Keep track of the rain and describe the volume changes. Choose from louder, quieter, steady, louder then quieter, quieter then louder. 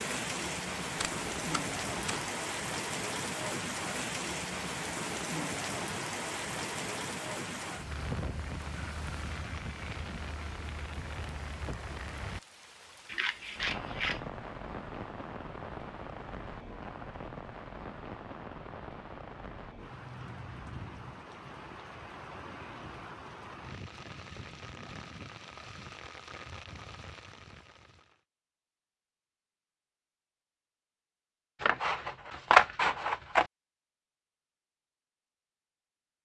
quieter.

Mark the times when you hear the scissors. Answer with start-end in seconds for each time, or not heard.
0.9-2.2, 13.1-14.2, 31.6-33.5.